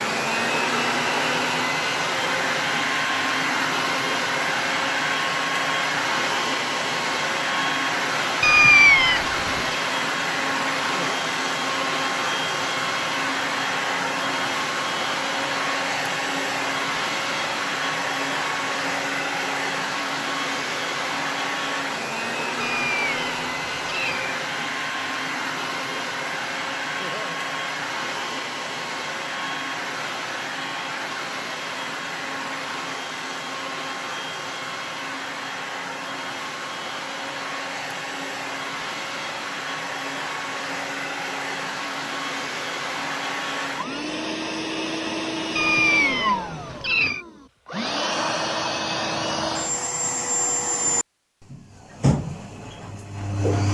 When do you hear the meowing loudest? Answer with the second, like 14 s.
9 s.